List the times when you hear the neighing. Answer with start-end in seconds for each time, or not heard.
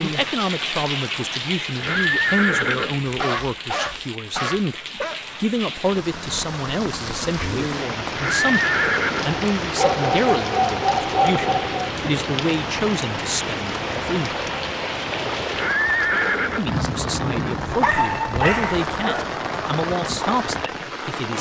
1.8-3.1, 8.1-9.3, 15.5-16.8.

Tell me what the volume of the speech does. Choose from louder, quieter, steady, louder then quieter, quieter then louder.
steady.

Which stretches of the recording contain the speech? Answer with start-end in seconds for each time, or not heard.
0.0-14.3, 16.6-21.3.